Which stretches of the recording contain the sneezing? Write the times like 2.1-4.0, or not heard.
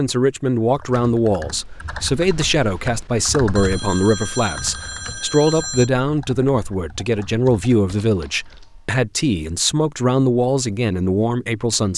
not heard.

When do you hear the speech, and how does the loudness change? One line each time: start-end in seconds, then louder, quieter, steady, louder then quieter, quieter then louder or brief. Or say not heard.
0.0-11.9 steady.